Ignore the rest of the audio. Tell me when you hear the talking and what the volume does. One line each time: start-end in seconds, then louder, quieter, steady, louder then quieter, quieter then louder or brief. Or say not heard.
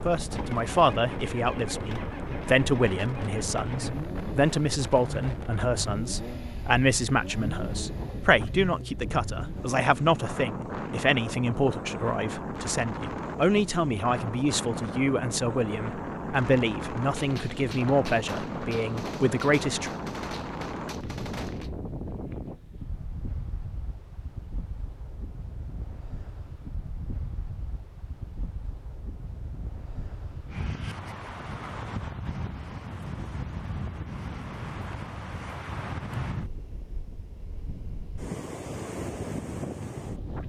0.1-19.9 steady.